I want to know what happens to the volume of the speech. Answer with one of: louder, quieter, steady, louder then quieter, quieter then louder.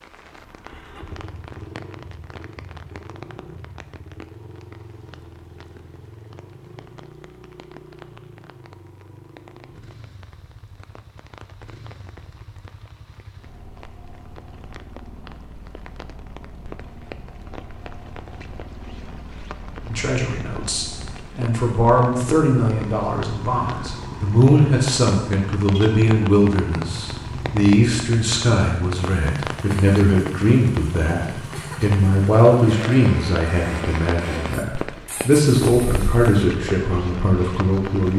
steady.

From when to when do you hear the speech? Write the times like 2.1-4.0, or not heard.
19.9-31.2, 31.8-38.1.